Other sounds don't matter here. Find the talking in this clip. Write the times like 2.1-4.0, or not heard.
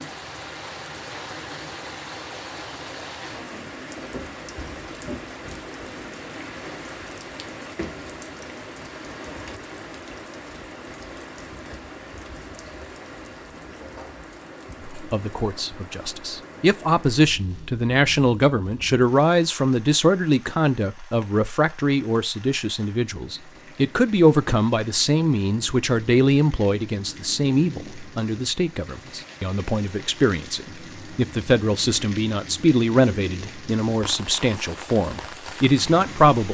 14.9-36.4.